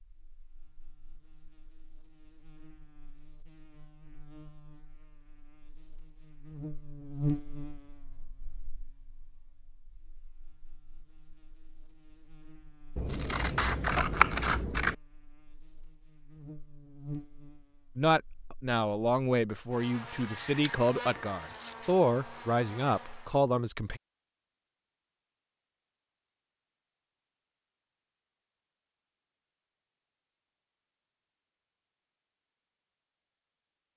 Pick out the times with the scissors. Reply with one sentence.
You can hear the scissors from 12.9 to 14.9 s and from 20.2 to 21.9 s.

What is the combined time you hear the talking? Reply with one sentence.
You can hear the talking for 6 seconds altogether.